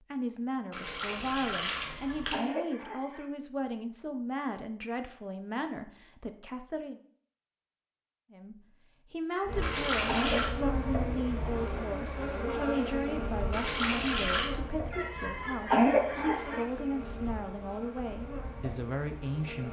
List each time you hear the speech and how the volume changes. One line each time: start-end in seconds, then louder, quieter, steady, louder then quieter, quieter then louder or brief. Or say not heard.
0.1-7.0 steady
8.3-19.6 steady.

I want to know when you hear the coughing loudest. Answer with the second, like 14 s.
16 s.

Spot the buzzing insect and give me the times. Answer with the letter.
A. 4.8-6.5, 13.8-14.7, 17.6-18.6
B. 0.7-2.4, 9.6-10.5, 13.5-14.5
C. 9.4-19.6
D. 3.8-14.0
C.